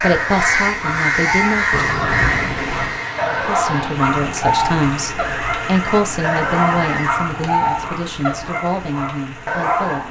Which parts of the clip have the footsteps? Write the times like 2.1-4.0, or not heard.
not heard.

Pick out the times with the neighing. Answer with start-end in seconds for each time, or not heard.
1.7-3.0, 5.2-7.1.